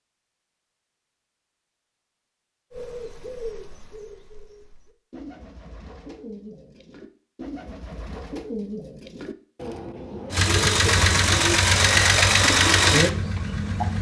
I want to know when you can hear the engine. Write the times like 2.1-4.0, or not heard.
10.3-13.9.